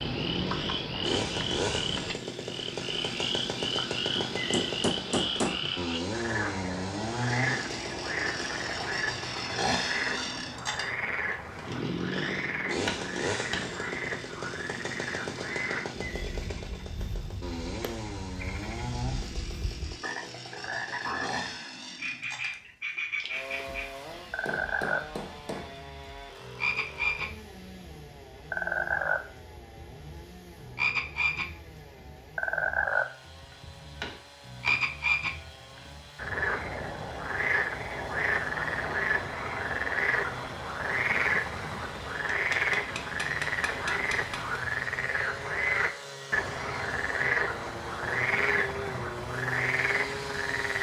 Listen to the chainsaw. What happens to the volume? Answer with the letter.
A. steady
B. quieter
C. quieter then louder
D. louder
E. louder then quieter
C.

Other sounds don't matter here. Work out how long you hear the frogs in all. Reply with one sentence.
You can hear the frogs for 51 seconds altogether.